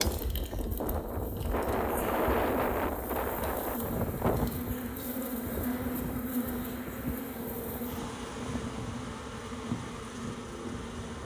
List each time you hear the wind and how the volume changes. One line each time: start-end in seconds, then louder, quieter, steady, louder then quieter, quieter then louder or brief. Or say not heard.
0.0-11.2 quieter.